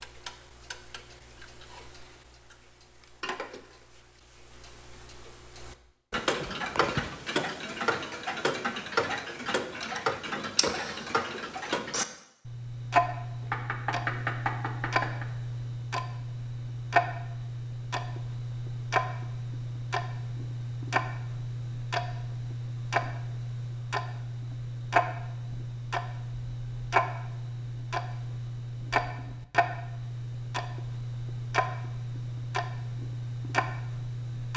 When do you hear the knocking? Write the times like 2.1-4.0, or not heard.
13.4-15.2.